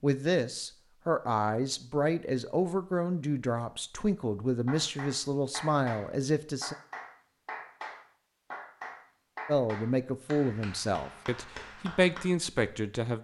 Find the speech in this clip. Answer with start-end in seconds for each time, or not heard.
0.0-6.8, 9.4-13.2.